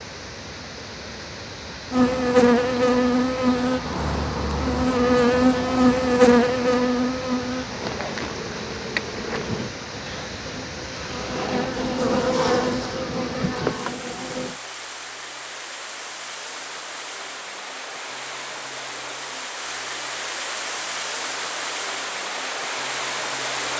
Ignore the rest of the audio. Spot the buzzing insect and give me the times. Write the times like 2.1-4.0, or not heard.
1.9-14.6.